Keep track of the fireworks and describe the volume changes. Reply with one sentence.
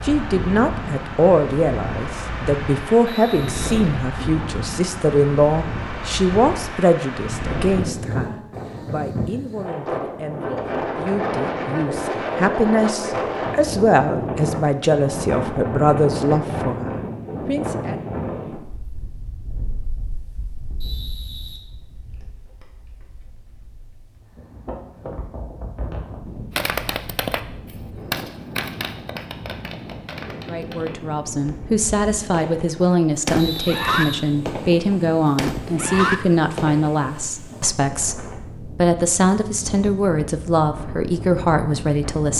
The volume of the fireworks goes down, then up.